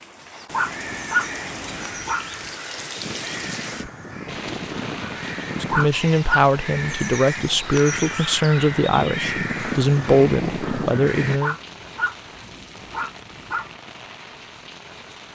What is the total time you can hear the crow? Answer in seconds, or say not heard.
11 s.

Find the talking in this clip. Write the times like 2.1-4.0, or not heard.
5.5-11.6.